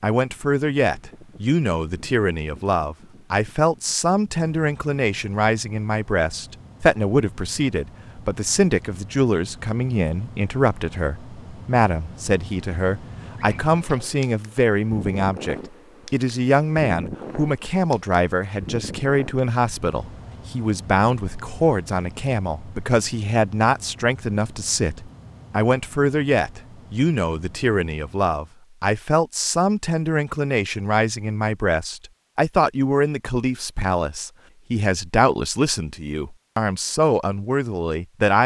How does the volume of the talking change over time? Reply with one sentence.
The loudness of the talking stays about the same.